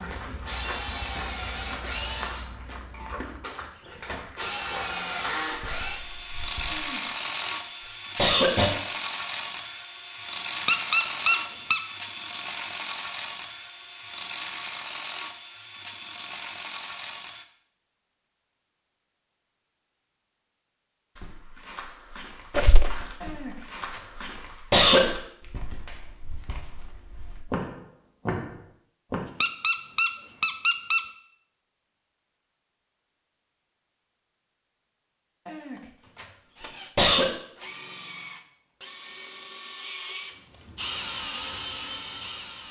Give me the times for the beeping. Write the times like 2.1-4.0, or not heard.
not heard.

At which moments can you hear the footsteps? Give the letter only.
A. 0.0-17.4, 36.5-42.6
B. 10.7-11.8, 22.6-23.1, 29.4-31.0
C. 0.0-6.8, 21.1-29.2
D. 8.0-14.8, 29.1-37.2
C.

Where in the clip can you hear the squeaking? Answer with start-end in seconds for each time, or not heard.
10.7-11.8, 22.6-23.1, 29.4-31.0.